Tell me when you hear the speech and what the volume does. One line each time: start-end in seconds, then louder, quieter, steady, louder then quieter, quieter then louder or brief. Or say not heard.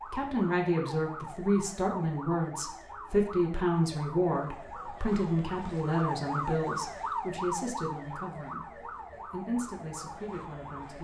0.1-10.9 quieter.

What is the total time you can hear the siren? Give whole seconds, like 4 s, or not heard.
11 s.